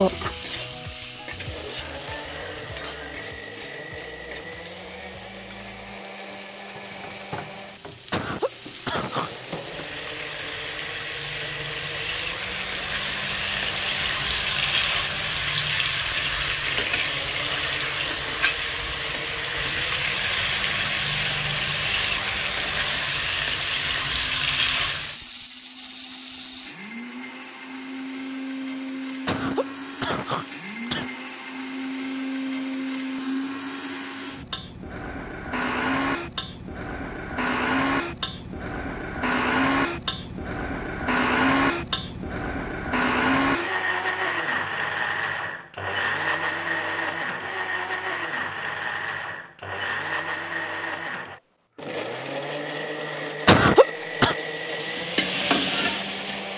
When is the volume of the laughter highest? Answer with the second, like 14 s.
54 s.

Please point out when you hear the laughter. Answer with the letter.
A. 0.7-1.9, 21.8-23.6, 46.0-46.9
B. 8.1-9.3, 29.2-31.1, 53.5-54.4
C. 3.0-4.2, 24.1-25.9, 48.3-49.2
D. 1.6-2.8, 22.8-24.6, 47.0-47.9
B.